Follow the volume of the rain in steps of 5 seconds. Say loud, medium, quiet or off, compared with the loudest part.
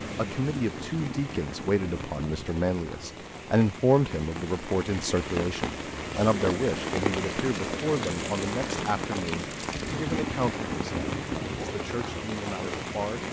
medium, loud, loud.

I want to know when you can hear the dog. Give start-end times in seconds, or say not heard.
not heard.